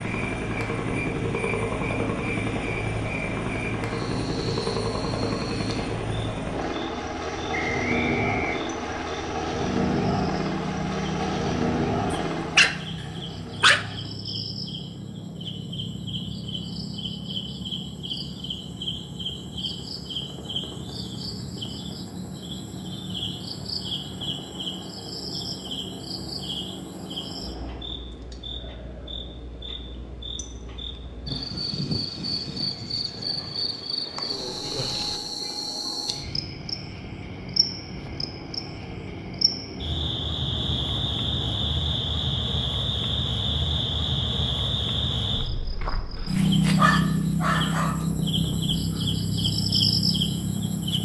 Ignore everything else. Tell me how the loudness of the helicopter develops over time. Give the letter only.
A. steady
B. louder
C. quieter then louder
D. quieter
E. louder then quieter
D.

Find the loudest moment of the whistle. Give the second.
8 s.